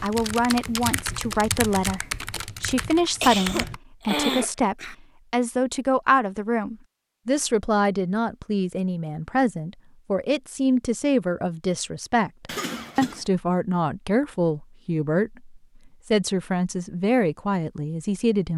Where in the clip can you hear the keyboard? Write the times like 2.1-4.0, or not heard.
0.0-3.8.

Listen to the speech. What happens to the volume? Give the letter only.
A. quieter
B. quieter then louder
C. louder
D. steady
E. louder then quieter
D.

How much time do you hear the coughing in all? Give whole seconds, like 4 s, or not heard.
3 s.